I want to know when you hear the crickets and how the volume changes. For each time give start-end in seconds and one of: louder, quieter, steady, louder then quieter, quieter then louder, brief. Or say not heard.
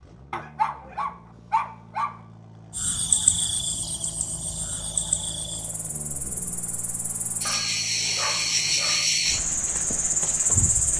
2.7-10.9 quieter then louder.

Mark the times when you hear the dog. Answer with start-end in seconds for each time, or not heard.
0.3-2.1, 7.4-9.1.